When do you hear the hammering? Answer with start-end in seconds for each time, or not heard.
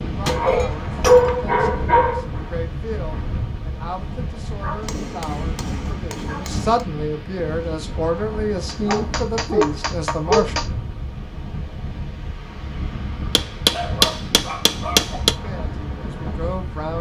0.2-1.4, 4.8-6.8, 8.7-10.7, 13.3-15.3.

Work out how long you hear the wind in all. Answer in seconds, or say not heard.
17 s.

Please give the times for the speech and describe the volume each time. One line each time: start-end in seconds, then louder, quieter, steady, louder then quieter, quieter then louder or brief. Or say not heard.
0.0-10.6 louder
15.4-16.9 brief.